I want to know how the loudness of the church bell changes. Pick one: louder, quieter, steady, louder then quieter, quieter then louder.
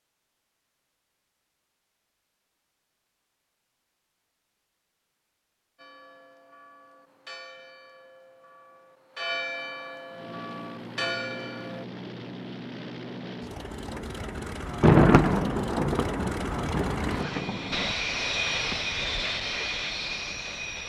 louder.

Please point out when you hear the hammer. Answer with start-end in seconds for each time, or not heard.
not heard.